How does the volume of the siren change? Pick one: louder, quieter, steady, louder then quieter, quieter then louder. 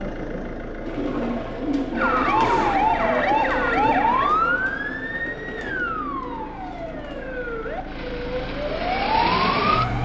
quieter then louder.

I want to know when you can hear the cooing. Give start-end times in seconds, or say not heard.
0.8-7.4.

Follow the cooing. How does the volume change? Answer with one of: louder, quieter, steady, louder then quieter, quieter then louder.
quieter.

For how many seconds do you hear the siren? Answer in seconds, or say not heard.
8 s.